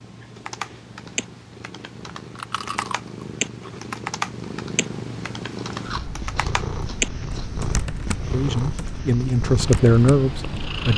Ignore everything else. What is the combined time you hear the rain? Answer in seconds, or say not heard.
not heard.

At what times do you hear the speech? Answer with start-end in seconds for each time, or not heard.
8.3-10.9.